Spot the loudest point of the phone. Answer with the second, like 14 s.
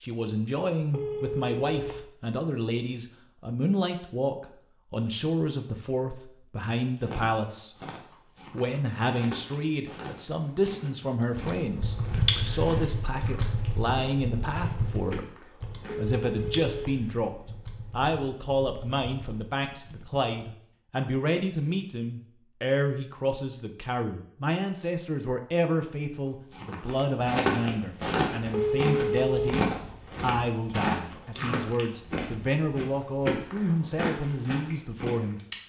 29 s.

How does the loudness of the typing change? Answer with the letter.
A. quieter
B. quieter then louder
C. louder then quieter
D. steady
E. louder
A.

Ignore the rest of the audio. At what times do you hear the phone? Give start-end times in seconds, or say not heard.
0.9-2.0, 15.8-17.0, 28.5-29.6.